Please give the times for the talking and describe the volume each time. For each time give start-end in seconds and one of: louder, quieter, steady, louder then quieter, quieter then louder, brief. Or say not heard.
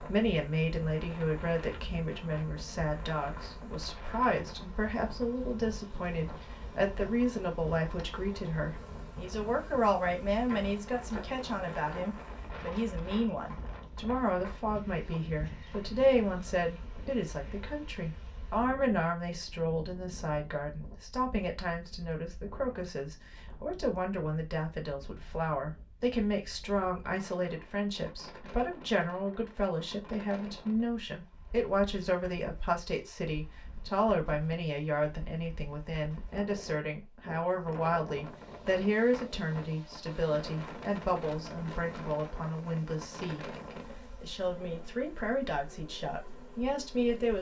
0.0-47.3 steady.